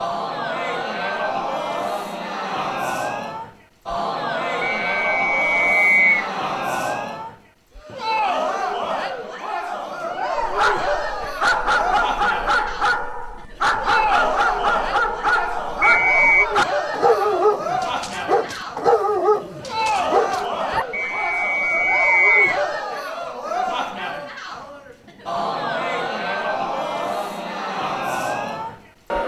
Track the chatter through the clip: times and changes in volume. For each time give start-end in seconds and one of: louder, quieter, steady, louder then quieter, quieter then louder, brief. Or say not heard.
0.0-29.2 steady.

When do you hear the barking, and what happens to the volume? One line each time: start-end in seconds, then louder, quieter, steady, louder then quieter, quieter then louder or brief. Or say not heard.
10.3-20.9 steady.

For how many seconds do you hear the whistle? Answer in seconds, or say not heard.
4 s.